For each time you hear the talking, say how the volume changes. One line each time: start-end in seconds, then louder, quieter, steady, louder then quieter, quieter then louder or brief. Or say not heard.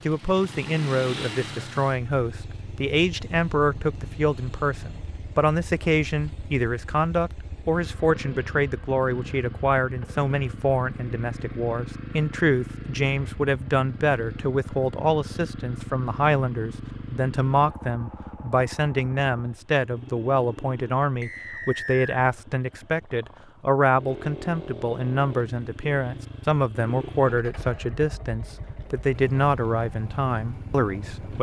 0.1-31.3 steady.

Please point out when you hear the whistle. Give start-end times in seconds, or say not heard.
21.2-22.2.